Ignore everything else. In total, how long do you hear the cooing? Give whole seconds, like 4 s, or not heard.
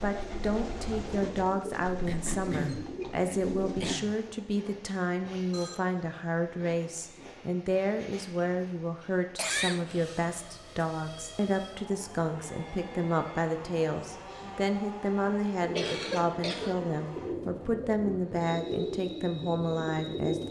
9 s.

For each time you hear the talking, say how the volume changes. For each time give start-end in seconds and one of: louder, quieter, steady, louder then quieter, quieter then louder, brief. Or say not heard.
0.0-20.4 steady.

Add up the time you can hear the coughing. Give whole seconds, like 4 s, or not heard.
4 s.